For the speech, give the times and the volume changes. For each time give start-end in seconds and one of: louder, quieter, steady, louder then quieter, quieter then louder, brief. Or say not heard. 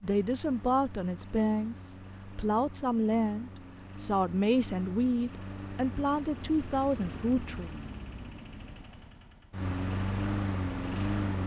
0.0-7.7 steady.